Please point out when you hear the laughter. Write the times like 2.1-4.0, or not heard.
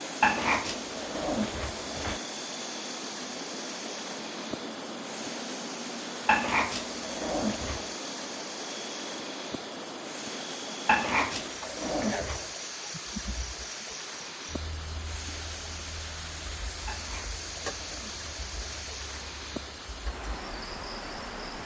not heard.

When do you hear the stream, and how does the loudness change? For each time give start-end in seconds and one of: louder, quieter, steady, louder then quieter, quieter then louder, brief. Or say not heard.
0.0-21.6 steady.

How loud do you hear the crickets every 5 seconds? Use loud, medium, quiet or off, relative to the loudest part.
loud, loud, loud, medium, medium.